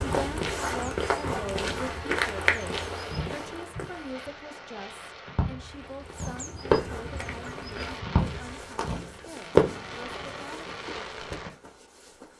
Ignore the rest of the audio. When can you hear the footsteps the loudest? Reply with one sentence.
The loudest moment of the footsteps is at 2 seconds.